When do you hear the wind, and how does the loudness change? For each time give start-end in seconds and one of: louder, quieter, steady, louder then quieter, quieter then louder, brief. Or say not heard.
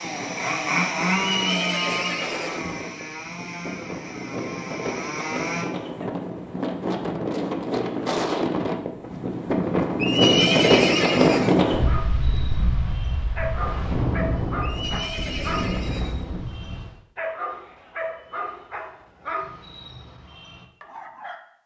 0.0-17.0 louder then quieter.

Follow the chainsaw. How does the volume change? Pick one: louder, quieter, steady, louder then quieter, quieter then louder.
quieter.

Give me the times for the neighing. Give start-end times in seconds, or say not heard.
1.1-2.8, 10.0-11.7, 14.6-16.4.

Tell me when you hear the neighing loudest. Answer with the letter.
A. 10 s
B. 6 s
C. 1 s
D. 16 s
A.